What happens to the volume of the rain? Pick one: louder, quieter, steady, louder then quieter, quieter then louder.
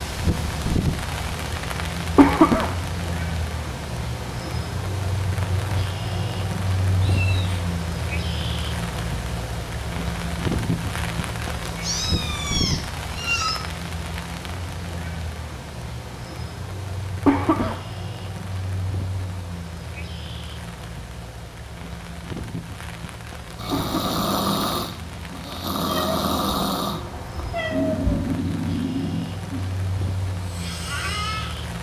quieter.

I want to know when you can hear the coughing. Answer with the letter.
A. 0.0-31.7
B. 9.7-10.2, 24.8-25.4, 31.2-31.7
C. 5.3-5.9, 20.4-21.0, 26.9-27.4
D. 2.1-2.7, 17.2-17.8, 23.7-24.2
D.